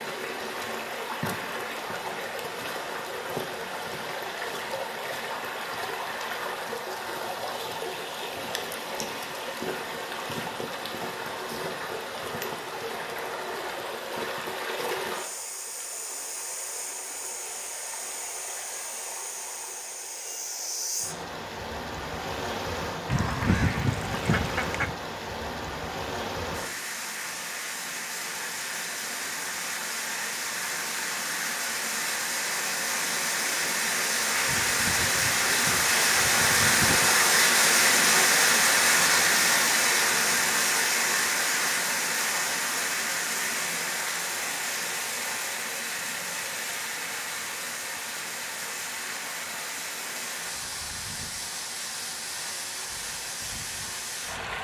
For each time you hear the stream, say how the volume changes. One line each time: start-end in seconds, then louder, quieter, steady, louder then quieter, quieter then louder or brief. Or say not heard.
0.0-54.5 louder then quieter.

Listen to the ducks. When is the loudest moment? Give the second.
24 s.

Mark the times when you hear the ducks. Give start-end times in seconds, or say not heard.
23.1-24.9, 34.5-37.1.